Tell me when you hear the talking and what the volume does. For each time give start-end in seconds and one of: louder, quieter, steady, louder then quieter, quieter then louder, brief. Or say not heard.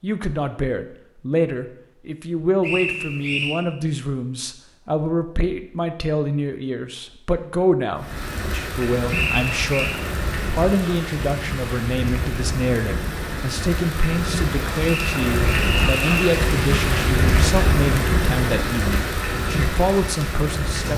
0.0-20.9 steady.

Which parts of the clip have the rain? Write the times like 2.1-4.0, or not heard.
8.0-20.9.